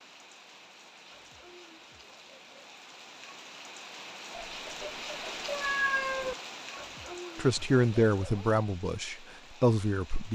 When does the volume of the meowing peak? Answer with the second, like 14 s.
6 s.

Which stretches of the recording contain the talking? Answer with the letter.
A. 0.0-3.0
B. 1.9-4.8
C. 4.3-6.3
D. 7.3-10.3
D.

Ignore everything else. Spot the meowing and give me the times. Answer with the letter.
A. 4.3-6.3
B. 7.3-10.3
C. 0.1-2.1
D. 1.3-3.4
A.